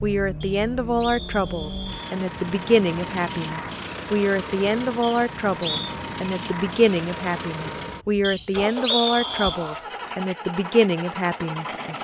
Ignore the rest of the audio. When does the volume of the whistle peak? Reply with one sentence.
The loudest moment of the whistle is at 9 seconds.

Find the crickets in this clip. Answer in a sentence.
You can't hear the crickets here.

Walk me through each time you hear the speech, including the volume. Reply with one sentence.
You can hear the speech from 0.0 to 11.9 s, at a steady volume.